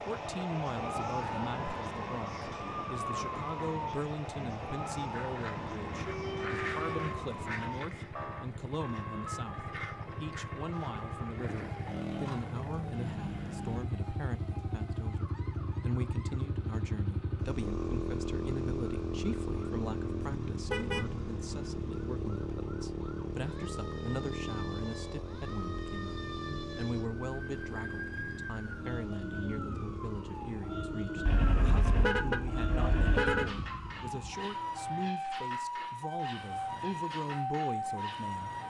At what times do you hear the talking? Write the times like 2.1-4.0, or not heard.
0.0-38.6.